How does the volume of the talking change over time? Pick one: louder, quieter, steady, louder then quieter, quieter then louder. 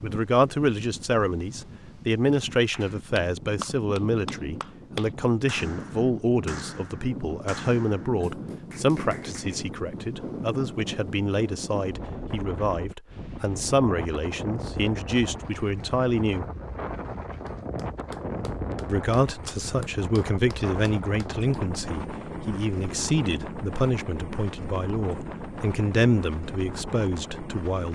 steady.